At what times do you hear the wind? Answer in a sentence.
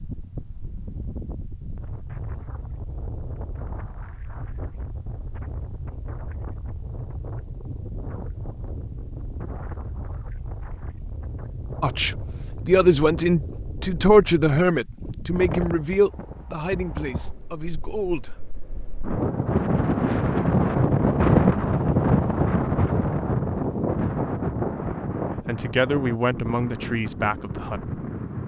You can hear the wind from 0.0 to 28.4 s.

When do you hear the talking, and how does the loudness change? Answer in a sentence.
The talking can be heard from 11.8 to 18.4 s, getting quieter; and briefly from 25.4 to 27.9 s.